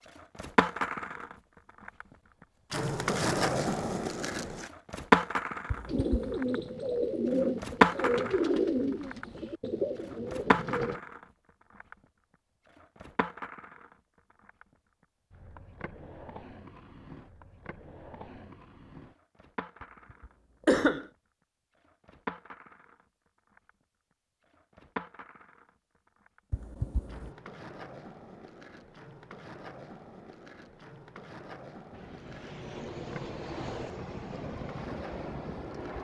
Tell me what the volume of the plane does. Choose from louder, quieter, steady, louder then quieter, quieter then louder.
steady.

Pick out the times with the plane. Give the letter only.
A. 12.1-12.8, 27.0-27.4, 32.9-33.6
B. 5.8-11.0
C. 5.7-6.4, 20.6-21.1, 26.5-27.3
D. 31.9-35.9
D.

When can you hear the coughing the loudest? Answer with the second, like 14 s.
21 s.